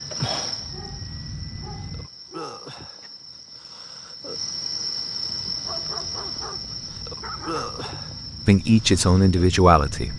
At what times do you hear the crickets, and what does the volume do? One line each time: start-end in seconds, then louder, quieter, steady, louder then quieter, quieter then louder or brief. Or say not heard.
0.0-10.1 louder then quieter.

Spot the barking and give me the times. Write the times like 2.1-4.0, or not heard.
0.7-3.1, 5.5-7.8.